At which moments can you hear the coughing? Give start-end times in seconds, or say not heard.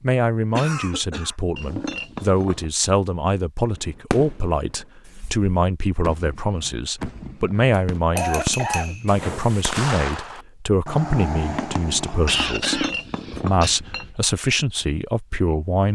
0.6-1.4, 8.2-8.9, 11.9-13.8.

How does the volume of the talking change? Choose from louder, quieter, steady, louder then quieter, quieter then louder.
steady.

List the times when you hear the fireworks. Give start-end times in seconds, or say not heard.
3.8-12.6.